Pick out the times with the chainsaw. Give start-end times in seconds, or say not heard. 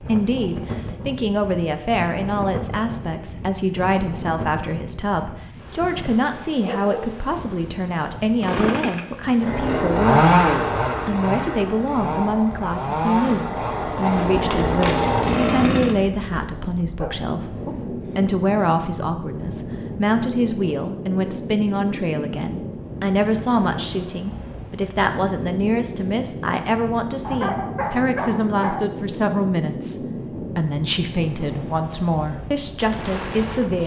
8.4-16.0.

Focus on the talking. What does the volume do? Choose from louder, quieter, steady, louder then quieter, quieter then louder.
steady.